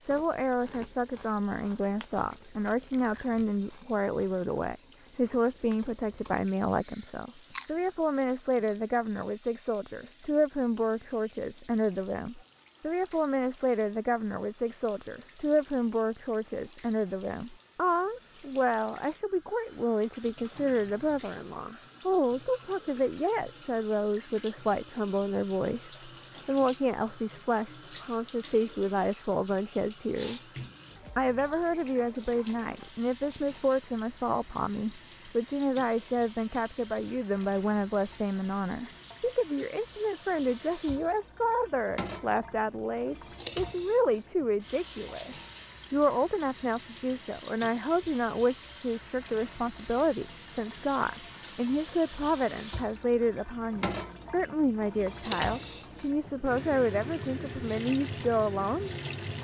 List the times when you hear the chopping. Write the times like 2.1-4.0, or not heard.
not heard.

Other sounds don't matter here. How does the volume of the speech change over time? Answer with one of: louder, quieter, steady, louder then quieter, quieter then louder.
steady.